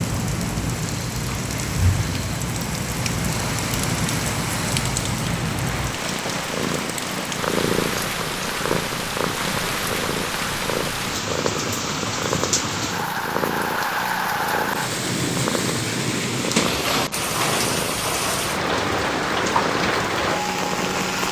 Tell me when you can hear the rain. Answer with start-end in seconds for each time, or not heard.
0.0-21.2.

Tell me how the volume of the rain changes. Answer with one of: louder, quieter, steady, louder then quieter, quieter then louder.
louder.